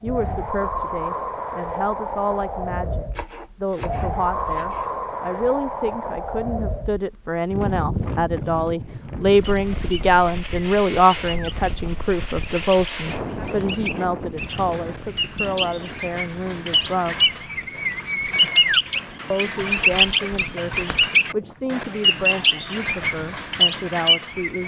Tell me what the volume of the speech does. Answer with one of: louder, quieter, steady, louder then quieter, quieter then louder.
louder then quieter.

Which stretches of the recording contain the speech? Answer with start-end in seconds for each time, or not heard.
0.0-17.3, 19.3-24.6.